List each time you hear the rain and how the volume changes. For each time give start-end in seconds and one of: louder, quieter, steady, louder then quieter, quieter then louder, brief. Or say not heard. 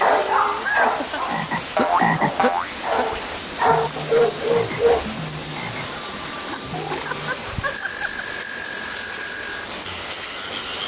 0.0-10.8 steady.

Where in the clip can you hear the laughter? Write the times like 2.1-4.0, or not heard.
0.6-1.4, 6.3-8.2.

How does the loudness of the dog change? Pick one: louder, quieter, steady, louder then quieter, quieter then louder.
quieter then louder.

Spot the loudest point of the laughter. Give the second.
1 s.